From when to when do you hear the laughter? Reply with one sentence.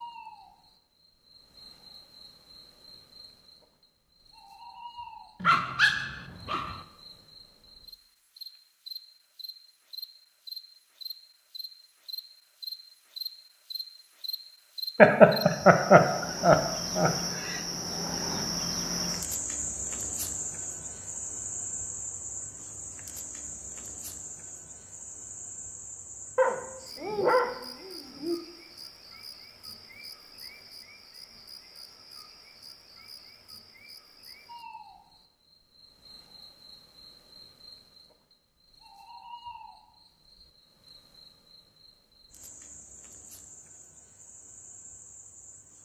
The laughter can be heard from 14.9 to 17.6 s.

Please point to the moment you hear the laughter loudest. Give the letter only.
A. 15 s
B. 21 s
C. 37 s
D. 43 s
A.